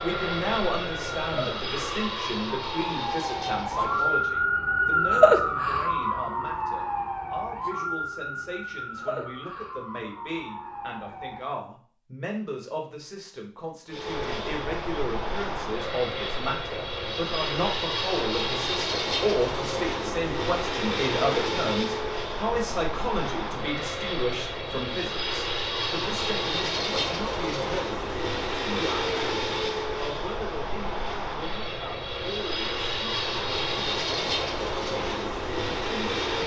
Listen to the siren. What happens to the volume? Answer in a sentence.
The loudness of the siren goes up, then down.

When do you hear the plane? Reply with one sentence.
The plane can be heard from 0.0 to 4.3 s and from 13.9 to 36.4 s.